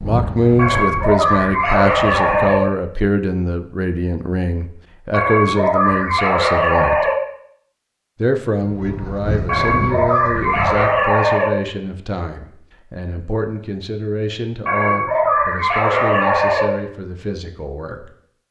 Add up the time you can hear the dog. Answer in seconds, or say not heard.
8 s.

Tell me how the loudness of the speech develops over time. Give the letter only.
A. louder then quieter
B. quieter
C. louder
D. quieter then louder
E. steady
B.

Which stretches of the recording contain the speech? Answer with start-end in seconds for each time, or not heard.
0.0-7.0, 8.2-18.1.